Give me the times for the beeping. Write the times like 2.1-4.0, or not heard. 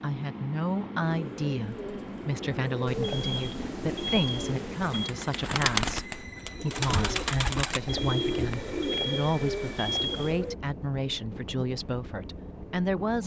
2.9-5.1, 7.7-10.3.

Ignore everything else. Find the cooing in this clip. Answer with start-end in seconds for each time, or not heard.
1.0-10.6.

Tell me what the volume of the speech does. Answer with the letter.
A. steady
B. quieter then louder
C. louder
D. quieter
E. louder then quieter
A.